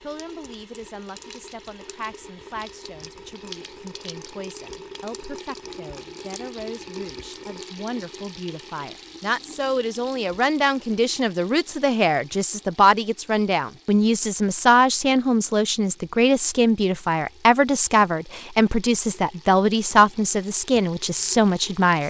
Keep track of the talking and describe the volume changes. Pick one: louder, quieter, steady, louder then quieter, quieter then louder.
louder.